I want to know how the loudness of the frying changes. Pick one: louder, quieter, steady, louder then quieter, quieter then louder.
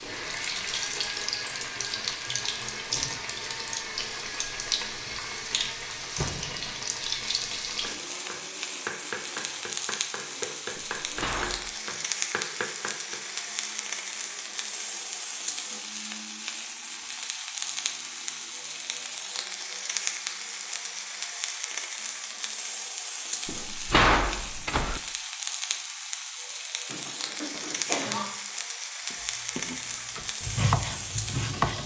steady.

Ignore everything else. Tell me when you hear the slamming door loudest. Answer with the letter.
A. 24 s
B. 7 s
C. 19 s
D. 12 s
A.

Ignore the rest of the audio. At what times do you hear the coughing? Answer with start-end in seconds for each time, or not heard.
26.9-28.2.